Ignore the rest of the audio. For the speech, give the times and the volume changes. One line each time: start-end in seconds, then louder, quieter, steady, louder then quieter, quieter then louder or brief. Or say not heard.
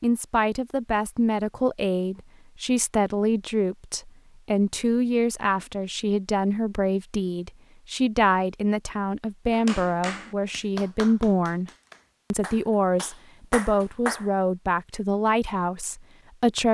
0.0-11.7 steady
12.3-16.6 quieter.